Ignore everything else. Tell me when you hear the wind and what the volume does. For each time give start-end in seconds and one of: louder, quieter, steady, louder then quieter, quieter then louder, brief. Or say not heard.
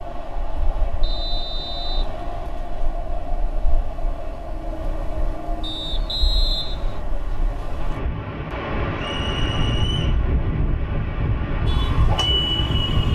0.0-13.1 louder.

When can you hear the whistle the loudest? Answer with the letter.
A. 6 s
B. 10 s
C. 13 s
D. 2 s
A.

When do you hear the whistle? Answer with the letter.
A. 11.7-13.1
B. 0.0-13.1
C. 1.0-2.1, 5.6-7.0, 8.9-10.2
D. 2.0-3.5
C.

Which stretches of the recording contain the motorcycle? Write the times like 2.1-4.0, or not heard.
11.7-13.1.